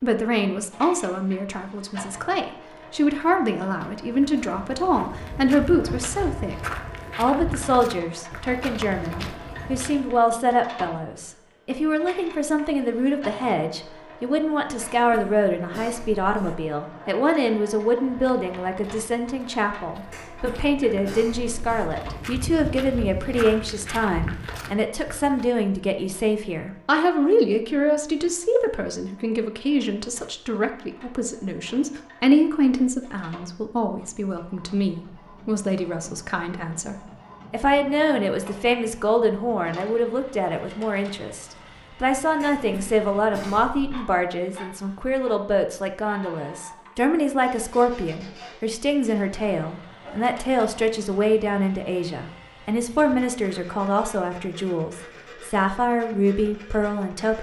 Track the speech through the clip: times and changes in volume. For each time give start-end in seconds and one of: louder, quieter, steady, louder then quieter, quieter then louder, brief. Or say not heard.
0.0-57.3 steady.